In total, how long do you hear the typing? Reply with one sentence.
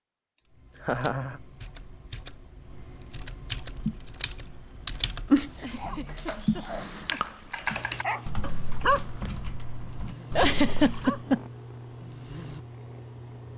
You can hear the typing for 11 seconds altogether.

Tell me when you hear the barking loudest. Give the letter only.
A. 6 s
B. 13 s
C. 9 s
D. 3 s
C.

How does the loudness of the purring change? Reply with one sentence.
The volume of the purring goes down.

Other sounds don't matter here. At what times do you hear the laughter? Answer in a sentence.
You can hear the laughter from 0.8 to 1.4 s, from 5.6 to 7.5 s and from 10.3 to 11.4 s.